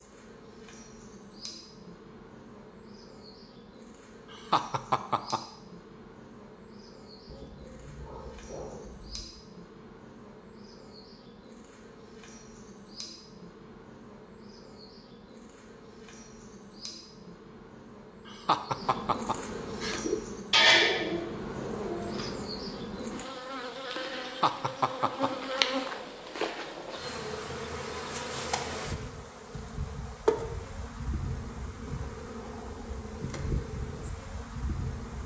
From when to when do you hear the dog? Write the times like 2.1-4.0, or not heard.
7.2-9.3.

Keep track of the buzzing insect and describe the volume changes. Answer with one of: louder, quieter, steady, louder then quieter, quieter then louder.
louder.